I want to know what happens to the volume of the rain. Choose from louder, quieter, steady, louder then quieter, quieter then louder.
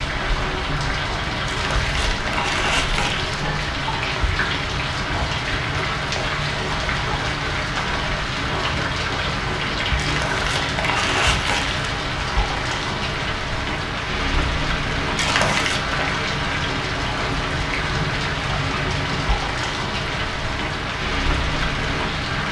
steady.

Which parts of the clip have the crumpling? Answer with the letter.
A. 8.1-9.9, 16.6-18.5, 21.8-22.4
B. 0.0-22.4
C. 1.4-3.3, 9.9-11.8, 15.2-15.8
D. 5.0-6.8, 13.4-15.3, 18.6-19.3
C.